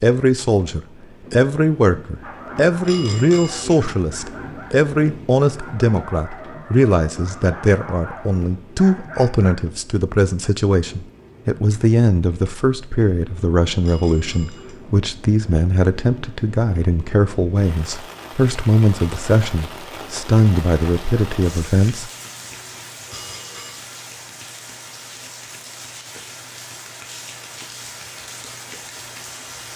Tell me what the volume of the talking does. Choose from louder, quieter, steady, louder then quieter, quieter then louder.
steady.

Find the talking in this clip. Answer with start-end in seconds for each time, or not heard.
0.0-22.1.